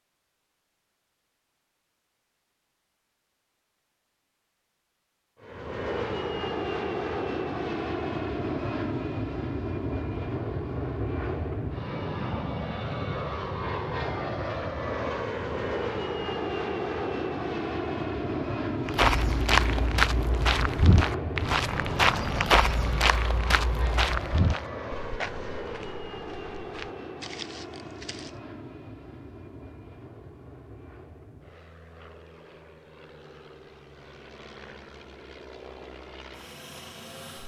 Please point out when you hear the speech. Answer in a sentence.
The speech can't be heard in this clip.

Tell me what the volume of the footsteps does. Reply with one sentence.
The volume of the footsteps goes down.